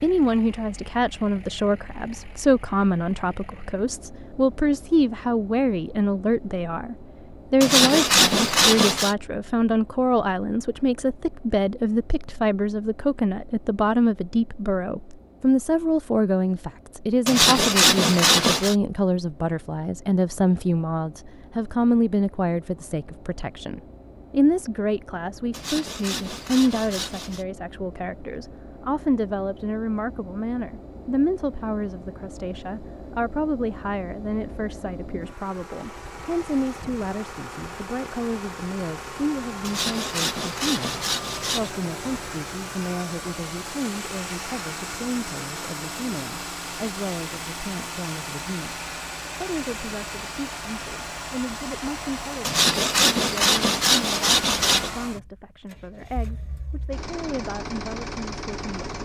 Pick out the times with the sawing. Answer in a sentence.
The sawing can be heard from 7.6 to 9.2 s, from 17.2 to 18.8 s, from 25.5 to 27.4 s, from 39.6 to 41.7 s and from 52.5 to 54.9 s.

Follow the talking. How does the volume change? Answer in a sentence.
The volume of the talking goes down.